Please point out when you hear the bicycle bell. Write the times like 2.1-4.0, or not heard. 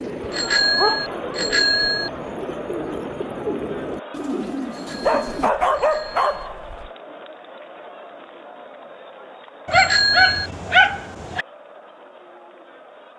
0.3-2.1, 4.7-6.5, 9.7-10.5.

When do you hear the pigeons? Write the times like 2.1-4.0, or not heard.
0.0-5.5.